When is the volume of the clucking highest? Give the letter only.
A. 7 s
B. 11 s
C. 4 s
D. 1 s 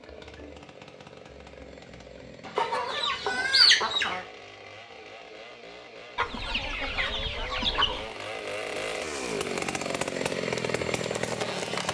C.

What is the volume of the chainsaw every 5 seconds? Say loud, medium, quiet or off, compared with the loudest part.
quiet, medium, loud.